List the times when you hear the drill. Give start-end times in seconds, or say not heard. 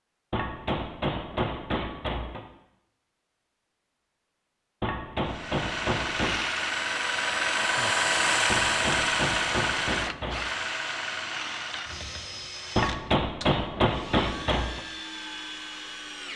5.2-16.3.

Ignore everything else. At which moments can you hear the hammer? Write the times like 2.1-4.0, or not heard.
0.3-2.4, 4.8-6.4, 8.4-10.4, 12.8-14.8.